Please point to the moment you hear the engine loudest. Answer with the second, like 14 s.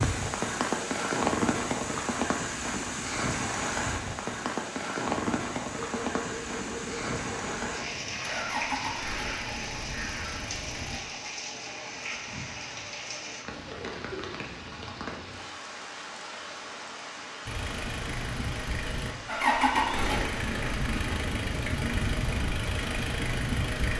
20 s.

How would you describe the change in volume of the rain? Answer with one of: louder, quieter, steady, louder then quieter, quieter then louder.
quieter.